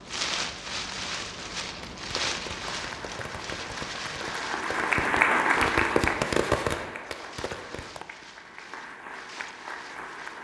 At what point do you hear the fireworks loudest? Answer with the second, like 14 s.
6 s.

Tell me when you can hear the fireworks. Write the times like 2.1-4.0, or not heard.
1.6-8.1.